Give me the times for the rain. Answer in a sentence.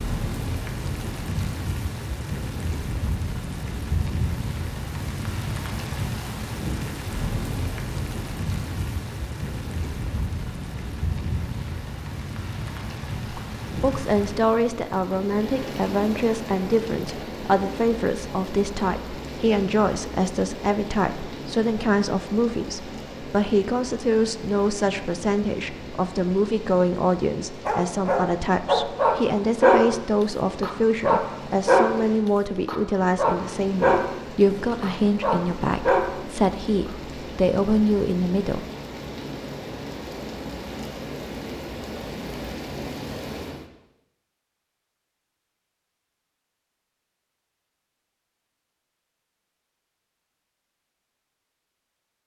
The rain can be heard from 0.0 to 43.7 s.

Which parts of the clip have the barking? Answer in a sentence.
The barking can be heard from 27.6 to 29.9 s, from 30.6 to 31.9 s, from 32.6 to 34.0 s and from 34.8 to 36.0 s.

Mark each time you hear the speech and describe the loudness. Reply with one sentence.
The speech can be heard from 13.3 to 38.6 s, at a steady volume.